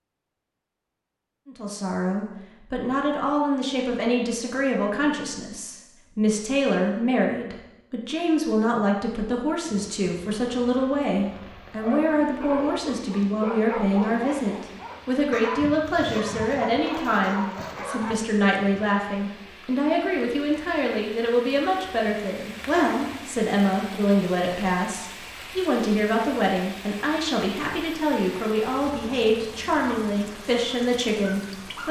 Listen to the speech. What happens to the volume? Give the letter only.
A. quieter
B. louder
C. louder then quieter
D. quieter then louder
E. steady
E.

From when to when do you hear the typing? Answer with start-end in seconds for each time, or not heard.
not heard.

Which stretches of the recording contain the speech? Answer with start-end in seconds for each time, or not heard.
1.4-31.8.